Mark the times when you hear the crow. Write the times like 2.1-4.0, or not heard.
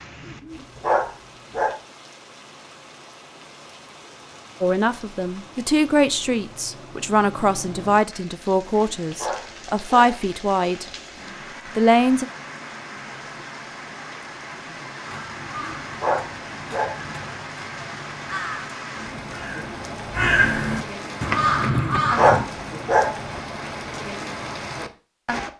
15.0-22.4.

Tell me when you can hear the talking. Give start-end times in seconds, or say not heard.
4.6-10.8, 11.8-12.2.